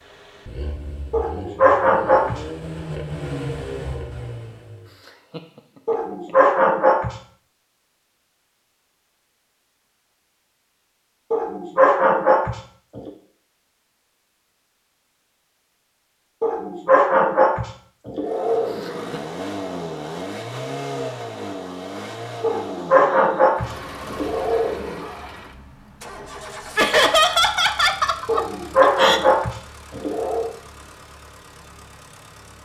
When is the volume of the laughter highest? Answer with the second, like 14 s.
27 s.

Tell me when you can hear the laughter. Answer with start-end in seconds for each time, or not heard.
5.0-6.5, 18.6-19.2, 26.8-29.2.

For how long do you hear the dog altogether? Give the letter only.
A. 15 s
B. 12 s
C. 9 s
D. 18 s
B.